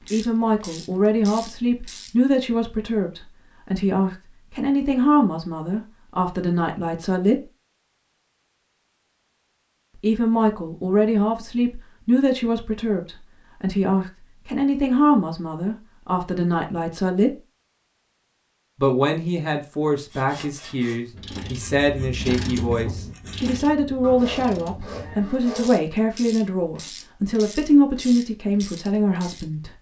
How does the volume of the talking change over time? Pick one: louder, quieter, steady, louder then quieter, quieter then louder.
steady.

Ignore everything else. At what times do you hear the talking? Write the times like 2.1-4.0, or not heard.
0.1-7.4, 10.0-17.4, 18.8-29.7.